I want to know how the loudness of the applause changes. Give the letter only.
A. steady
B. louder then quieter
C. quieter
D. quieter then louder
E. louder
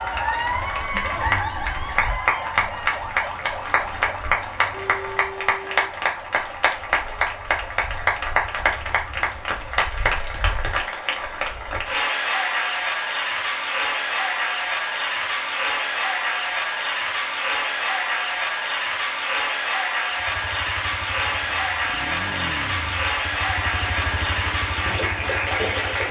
A.